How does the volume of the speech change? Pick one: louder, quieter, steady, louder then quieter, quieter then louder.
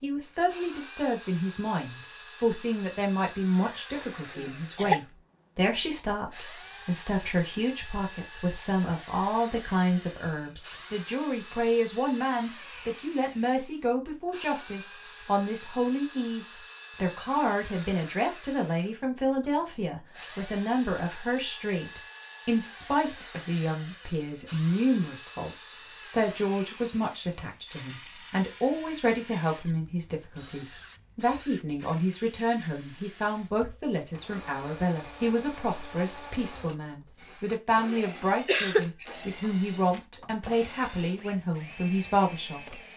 steady.